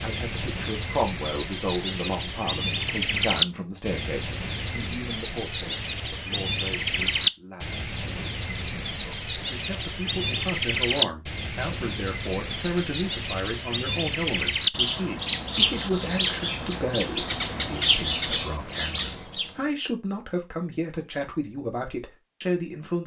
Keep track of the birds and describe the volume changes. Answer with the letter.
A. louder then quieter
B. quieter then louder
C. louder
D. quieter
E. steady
E.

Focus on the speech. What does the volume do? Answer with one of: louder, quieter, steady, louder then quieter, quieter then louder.
quieter then louder.